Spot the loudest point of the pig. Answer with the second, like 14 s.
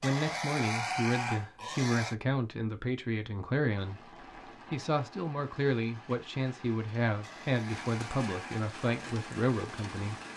1 s.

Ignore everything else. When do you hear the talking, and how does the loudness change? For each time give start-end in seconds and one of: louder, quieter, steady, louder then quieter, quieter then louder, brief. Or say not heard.
0.0-10.2 steady.